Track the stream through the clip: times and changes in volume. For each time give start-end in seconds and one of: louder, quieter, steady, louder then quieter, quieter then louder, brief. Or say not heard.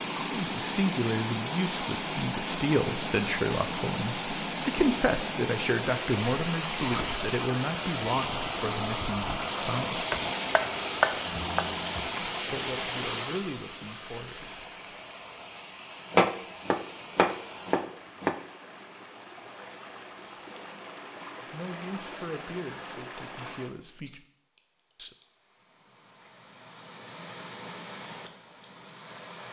0.0-29.4 quieter.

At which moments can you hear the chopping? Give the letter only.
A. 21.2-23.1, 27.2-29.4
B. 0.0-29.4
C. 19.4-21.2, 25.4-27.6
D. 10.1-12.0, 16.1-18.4
D.